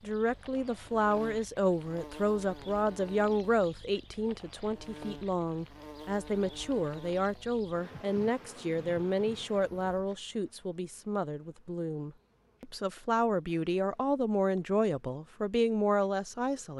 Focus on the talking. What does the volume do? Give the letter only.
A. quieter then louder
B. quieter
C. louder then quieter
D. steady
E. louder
A.